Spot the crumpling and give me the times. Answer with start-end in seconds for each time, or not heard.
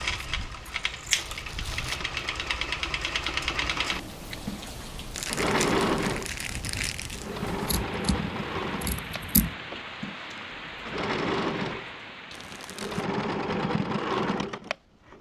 1.1-2.0, 5.1-7.2, 12.3-13.1.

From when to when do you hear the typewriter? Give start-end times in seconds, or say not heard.
not heard.